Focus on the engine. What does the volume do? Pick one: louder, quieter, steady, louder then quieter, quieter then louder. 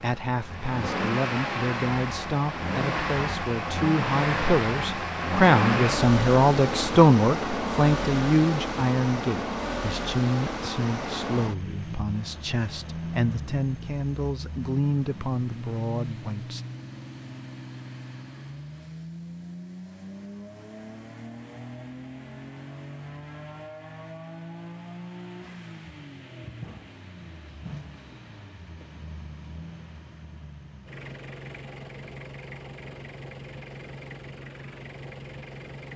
quieter.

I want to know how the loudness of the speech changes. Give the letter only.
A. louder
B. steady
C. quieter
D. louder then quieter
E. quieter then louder
D.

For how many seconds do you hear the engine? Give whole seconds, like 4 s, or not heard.
36 s.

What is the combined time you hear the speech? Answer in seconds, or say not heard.
17 s.